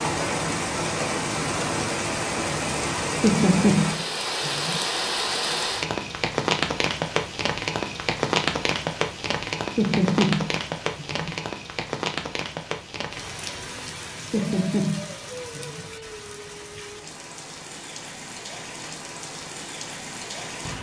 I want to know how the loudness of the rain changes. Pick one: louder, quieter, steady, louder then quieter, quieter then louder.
quieter.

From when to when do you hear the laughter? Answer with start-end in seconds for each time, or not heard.
3.2-4.8, 9.8-11.3, 14.3-15.9.